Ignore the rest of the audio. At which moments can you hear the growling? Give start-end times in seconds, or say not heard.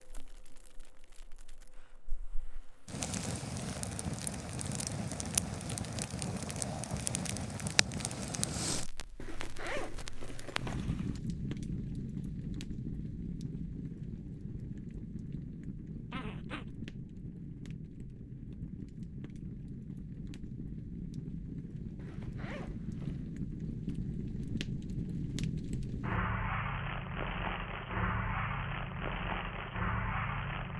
6.2-7.1, 16.1-16.6.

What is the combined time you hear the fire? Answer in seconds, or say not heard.
31 s.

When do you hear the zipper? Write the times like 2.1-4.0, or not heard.
9.2-11.2, 21.9-23.3.